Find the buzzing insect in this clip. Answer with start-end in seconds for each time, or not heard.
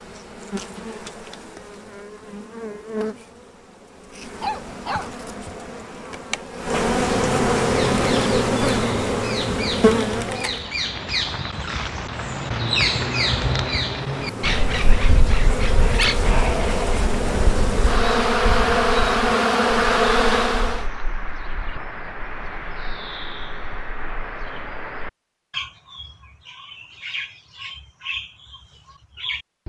0.0-10.7, 14.1-20.9.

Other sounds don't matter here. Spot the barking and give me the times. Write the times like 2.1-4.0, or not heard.
4.4-5.6.